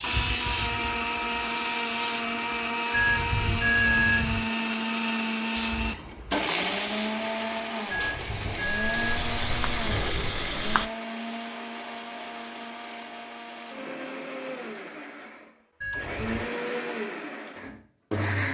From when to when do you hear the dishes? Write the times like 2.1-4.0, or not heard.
not heard.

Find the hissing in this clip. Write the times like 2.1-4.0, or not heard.
0.0-2.8, 5.5-10.9.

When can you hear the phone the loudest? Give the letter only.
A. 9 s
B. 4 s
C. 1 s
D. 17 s
B.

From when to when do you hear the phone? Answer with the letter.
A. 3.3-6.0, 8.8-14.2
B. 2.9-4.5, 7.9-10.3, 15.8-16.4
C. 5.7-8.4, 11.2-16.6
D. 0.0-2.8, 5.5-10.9
B.